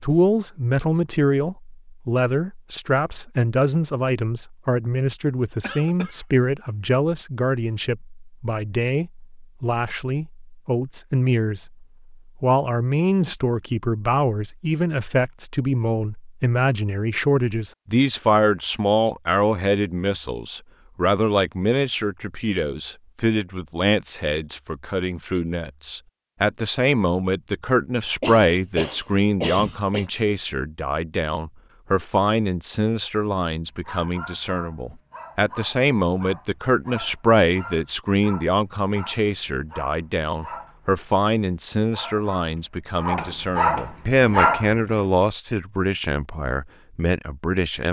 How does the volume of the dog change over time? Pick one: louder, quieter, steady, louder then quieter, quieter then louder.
louder.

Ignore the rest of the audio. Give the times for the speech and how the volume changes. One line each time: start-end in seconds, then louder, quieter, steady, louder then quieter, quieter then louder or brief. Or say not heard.
0.0-47.8 steady.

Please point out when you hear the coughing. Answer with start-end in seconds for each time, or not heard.
5.6-6.2, 28.2-30.1.